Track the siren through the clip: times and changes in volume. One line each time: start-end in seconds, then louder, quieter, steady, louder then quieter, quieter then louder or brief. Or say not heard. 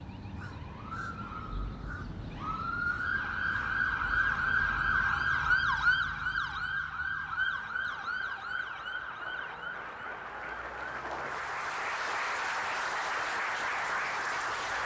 0.0-14.8 louder then quieter.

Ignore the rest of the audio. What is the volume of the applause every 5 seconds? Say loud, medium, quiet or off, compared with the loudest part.
off, quiet, loud.